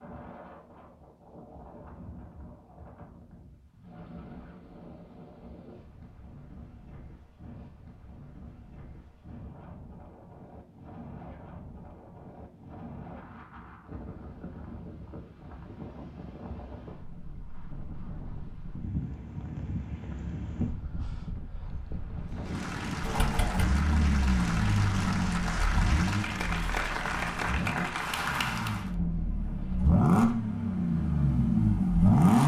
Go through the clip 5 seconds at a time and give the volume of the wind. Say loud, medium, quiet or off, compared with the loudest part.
medium, medium, medium, loud, loud, medium, off.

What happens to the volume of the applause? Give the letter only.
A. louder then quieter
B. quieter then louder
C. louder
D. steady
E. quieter
C.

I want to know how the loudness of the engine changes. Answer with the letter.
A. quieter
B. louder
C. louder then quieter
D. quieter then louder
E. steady
D.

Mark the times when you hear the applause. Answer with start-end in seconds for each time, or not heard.
22.2-28.9.